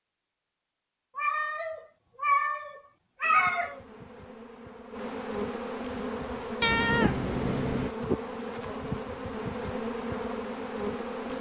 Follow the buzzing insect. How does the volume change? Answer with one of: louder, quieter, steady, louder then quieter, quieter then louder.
louder.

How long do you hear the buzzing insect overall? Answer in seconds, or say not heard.
8 s.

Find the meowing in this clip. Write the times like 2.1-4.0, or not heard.
1.1-3.8, 6.6-8.0.